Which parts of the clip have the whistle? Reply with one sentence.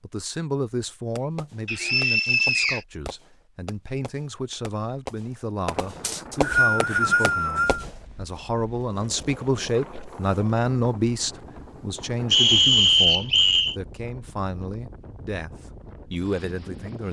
You can hear the whistle from 1.6 to 2.8 s, from 6.0 to 7.8 s and from 12.3 to 13.8 s.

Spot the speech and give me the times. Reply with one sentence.
The speech can be heard from 0.0 to 17.0 s.